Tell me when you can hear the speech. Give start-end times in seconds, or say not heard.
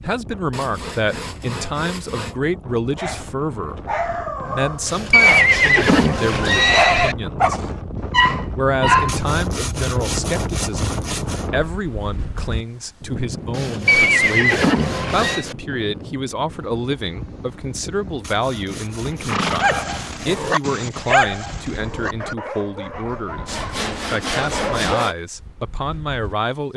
0.0-7.6, 8.6-26.7.